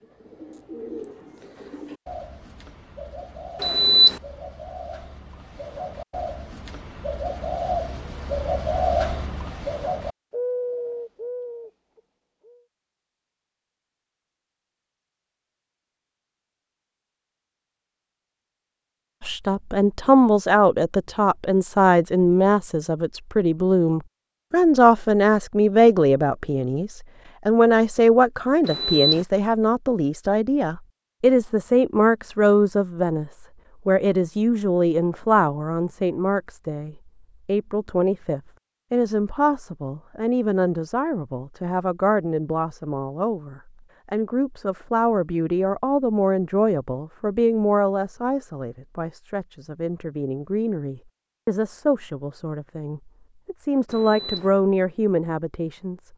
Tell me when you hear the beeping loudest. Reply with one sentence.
The volume of the beeping peaks at 4 seconds.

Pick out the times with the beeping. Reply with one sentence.
The beeping can be heard from 3.6 to 4.2 s, from 28.6 to 29.2 s and from 53.9 to 54.5 s.